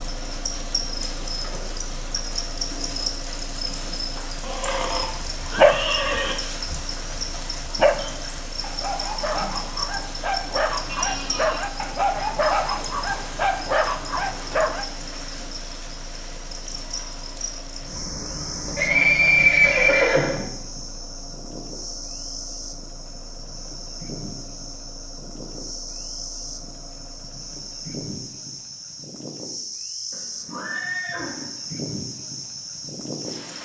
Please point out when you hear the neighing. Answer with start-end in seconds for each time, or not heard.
4.4-6.3, 18.8-20.4, 30.1-31.6.